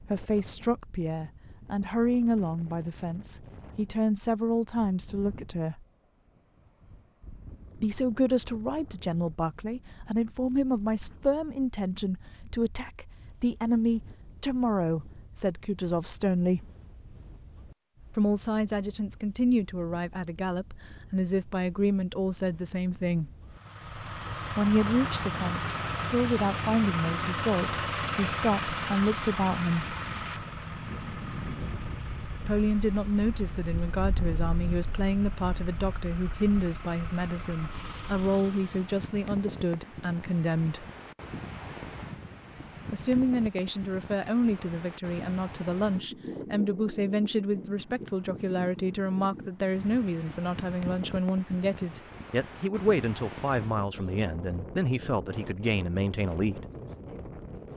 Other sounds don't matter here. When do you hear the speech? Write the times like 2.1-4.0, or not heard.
0.1-5.8, 7.8-16.6, 18.1-23.3, 24.5-29.9, 32.4-40.9, 42.9-56.6.